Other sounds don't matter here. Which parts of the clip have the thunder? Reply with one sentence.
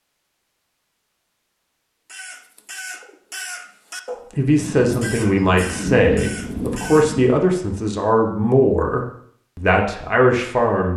The thunder can be heard from 4.5 to 7.3 s.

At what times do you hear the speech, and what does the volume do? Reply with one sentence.
The speech can be heard from 4.3 to 10.9 s, at a steady volume.